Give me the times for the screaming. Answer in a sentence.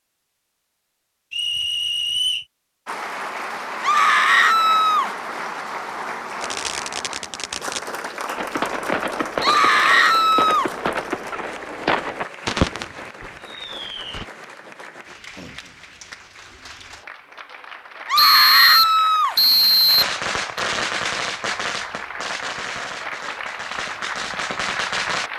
The screaming can be heard from 3.8 to 5.1 s, from 9.4 to 10.7 s and from 18.1 to 19.4 s.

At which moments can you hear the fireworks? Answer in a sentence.
You can hear the fireworks from 6.4 to 14.2 s and from 19.9 to 25.3 s.